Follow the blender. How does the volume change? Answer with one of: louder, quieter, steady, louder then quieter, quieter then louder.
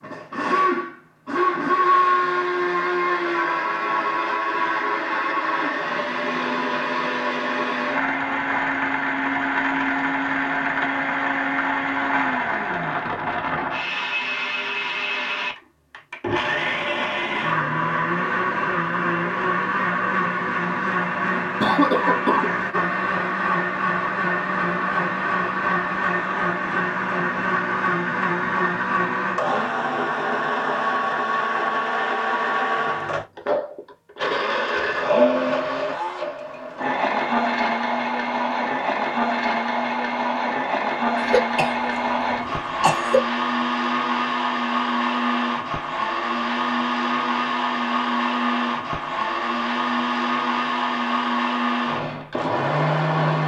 steady.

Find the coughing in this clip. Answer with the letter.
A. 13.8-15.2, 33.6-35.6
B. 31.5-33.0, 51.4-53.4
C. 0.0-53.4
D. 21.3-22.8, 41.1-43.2
D.